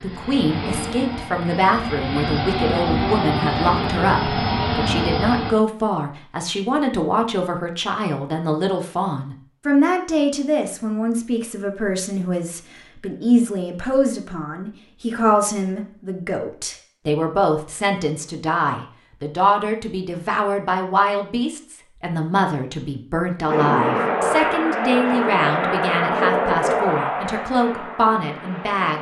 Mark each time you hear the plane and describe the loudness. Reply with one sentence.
You can hear the plane from 0.0 to 5.5 s, getting louder; and from 23.4 to 28.9 s, getting quieter.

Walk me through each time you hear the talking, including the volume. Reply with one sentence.
You can hear the talking from 0.0 to 28.9 s, at a steady volume.